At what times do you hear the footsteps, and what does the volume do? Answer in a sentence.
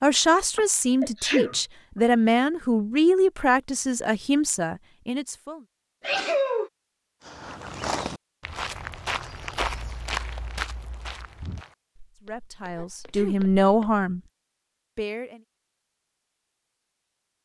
The footsteps can be heard from 7.2 to 14.1 s, getting quieter.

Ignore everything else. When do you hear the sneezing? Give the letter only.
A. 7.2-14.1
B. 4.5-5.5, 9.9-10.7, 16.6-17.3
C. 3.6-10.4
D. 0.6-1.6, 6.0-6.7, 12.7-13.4
D.